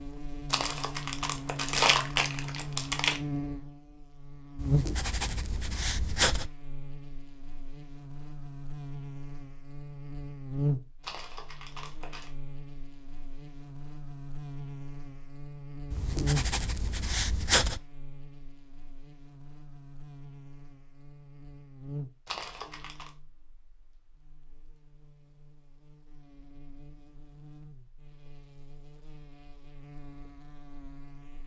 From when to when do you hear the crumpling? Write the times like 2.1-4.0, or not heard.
0.5-3.2, 11.0-12.3, 22.2-23.1.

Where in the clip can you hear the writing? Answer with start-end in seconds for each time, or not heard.
4.5-6.5, 15.9-17.8.